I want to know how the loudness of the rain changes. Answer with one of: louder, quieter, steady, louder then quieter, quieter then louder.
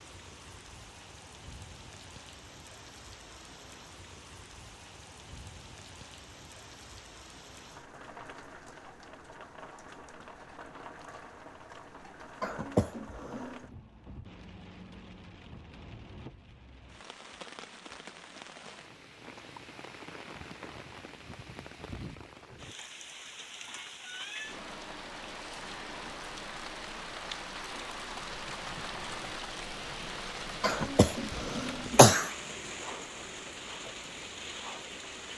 louder.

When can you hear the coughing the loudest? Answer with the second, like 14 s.
32 s.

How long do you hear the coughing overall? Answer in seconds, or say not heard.
3 s.